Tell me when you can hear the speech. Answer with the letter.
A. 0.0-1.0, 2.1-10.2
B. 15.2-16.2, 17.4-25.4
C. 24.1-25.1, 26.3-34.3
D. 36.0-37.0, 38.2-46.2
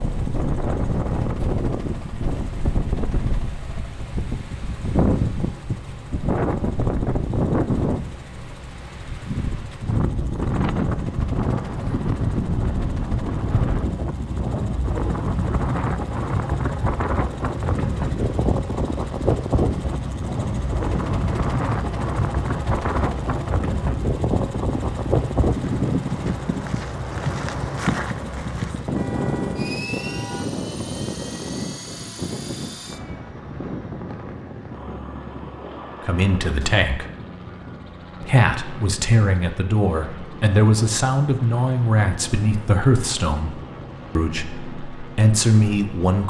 D.